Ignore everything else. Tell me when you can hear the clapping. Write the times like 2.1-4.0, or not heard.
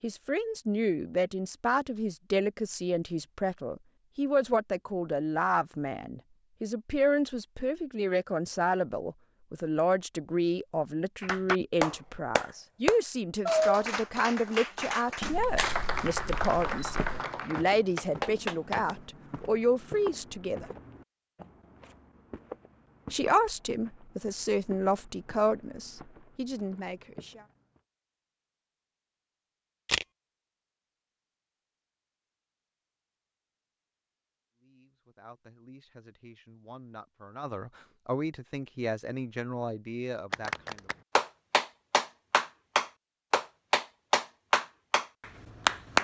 11.2-18.8, 40.3-45.9.